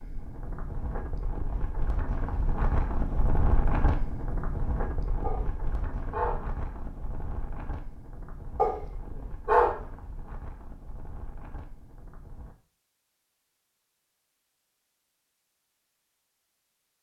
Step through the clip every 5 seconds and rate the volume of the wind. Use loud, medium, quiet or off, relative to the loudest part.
loud, medium, quiet, off.